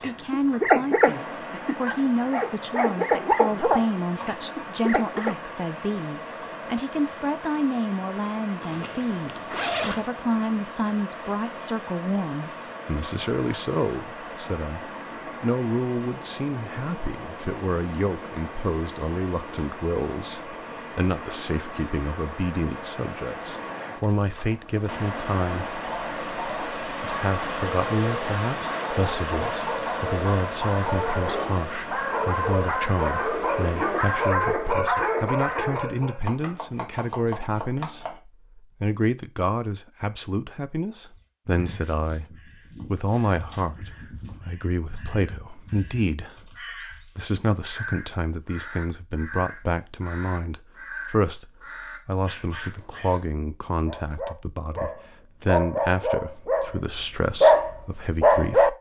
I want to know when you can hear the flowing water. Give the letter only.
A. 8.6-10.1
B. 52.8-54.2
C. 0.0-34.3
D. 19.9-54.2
C.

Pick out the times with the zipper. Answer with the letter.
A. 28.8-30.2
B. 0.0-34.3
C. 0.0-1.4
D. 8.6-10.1
D.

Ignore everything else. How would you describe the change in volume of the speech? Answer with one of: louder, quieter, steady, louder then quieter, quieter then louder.
steady.